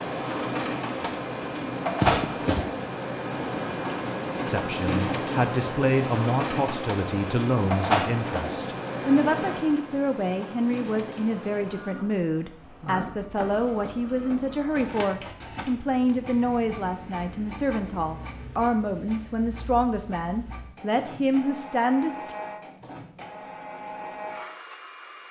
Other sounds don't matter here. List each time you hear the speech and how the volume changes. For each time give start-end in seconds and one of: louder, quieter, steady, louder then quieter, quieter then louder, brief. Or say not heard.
4.5-22.4 steady.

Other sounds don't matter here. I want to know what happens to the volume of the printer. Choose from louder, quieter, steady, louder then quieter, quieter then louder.
quieter.